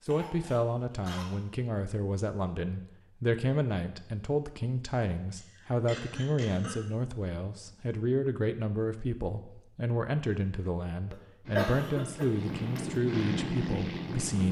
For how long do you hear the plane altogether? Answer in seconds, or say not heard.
3 s.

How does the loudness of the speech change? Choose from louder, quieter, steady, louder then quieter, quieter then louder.
steady.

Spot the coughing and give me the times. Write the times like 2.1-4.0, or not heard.
0.1-1.3, 5.3-6.8, 11.1-12.9.